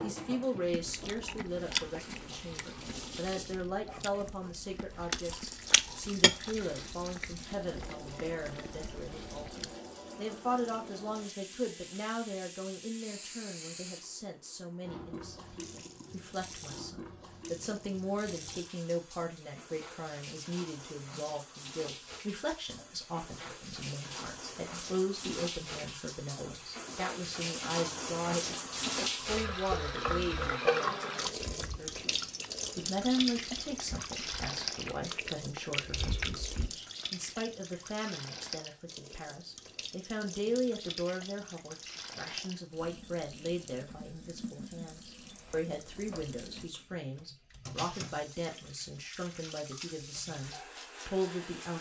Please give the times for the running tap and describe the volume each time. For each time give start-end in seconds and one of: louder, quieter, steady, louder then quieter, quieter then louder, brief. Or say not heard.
0.0-51.7 louder then quieter.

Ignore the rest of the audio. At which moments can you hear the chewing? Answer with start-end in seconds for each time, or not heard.
0.7-9.8, 31.1-36.7.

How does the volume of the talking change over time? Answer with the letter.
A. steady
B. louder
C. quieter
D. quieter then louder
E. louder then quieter
A.